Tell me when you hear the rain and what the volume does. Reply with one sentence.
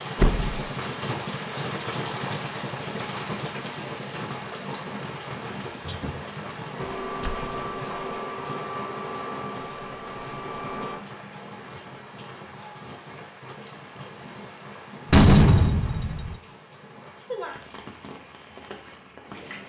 The rain can be heard from 0.0 to 19.6 s, getting quieter.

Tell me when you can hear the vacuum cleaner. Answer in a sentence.
The vacuum cleaner can be heard from 6.8 to 11.0 s.